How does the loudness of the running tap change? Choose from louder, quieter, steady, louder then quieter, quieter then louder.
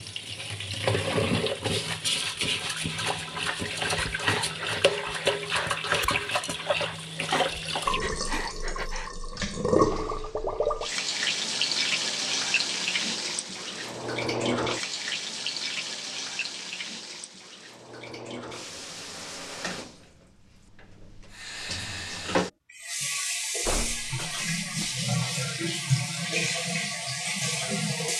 quieter then louder.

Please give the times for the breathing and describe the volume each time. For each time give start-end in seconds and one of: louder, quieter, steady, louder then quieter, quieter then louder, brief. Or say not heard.
3.8-9.1 steady.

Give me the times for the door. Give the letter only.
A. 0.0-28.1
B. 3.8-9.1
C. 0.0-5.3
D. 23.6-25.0
D.